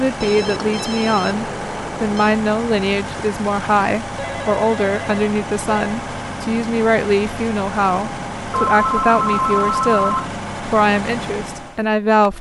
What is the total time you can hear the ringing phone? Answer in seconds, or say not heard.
6 s.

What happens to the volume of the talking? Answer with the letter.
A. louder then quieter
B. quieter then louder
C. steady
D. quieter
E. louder
C.